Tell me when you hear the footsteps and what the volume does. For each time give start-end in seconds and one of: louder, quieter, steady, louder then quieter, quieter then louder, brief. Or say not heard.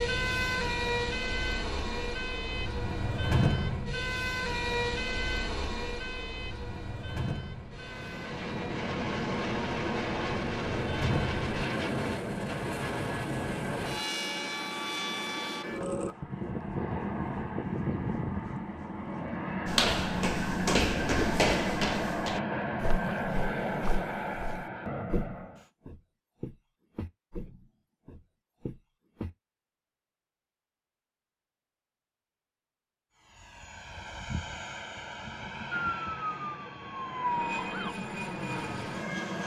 19.6-29.3 quieter.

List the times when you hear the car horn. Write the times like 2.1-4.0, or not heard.
not heard.